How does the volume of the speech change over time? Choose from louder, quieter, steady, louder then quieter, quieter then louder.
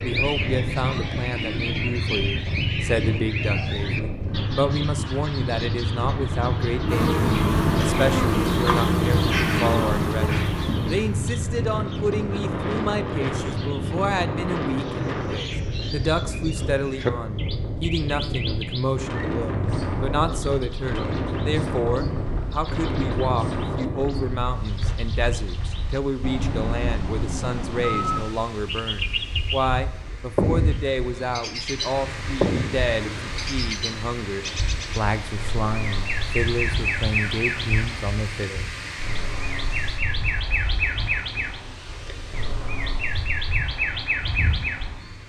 steady.